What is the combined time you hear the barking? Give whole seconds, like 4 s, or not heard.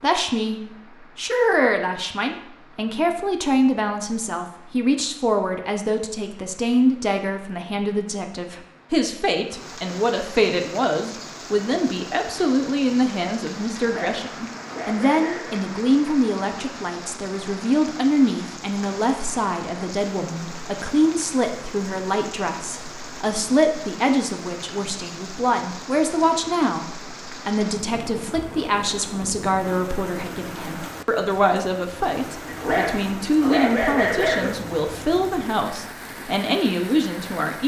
4 s.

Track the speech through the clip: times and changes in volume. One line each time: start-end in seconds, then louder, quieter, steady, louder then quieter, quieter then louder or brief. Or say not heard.
0.0-37.6 steady.